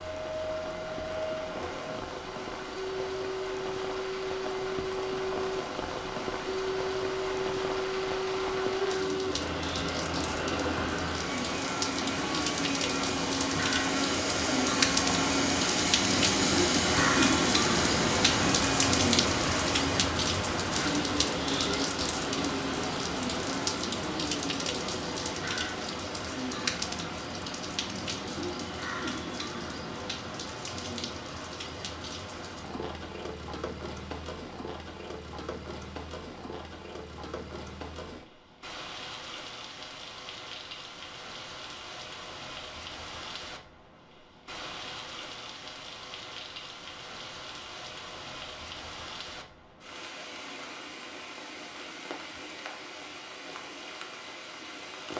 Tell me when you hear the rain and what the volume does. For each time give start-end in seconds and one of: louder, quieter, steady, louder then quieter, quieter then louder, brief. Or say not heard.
0.0-55.1 louder then quieter.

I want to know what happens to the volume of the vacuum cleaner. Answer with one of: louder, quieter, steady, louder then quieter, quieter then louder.
louder.